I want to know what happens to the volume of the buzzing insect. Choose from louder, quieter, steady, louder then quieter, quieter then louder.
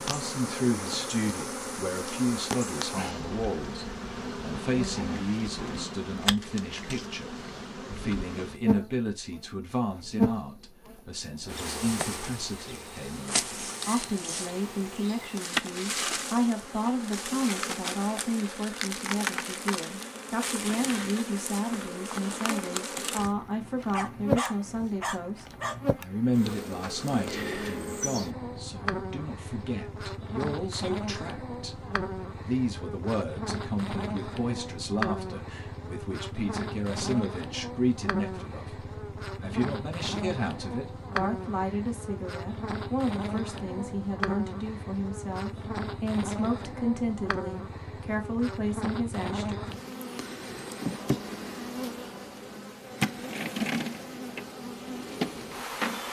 steady.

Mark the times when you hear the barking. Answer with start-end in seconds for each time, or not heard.
23.9-25.8.